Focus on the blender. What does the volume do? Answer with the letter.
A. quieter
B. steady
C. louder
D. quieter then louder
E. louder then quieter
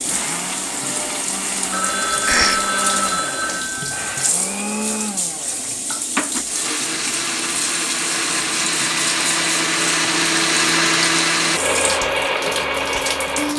C.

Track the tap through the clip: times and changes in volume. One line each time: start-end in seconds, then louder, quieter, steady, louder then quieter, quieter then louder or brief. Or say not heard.
0.0-13.5 steady.